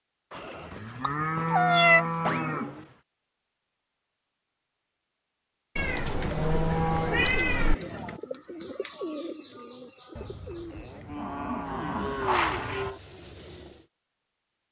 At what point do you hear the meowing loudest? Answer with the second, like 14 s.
2 s.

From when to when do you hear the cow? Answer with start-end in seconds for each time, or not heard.
0.3-3.0, 6.2-8.2, 10.2-13.0.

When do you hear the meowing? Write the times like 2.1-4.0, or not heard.
1.0-2.8, 5.8-7.8, 12.2-12.9.